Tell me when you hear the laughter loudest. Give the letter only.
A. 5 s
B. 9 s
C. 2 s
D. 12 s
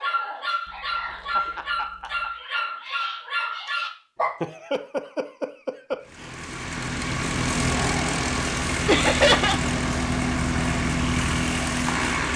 B.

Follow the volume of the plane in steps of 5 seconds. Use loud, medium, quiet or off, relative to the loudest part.
off, loud, loud.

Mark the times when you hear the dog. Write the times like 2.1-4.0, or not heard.
0.0-4.3.